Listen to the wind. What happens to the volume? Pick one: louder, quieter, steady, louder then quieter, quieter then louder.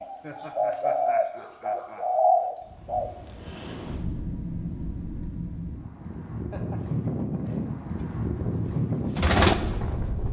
louder.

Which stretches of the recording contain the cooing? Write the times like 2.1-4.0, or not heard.
0.0-3.1, 8.0-10.2.